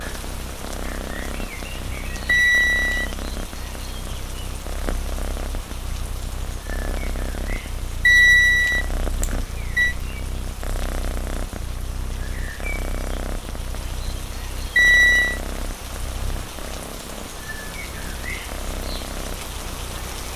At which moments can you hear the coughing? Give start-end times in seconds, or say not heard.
not heard.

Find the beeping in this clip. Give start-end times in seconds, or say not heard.
2.2-3.1, 8.1-9.9, 14.8-15.4.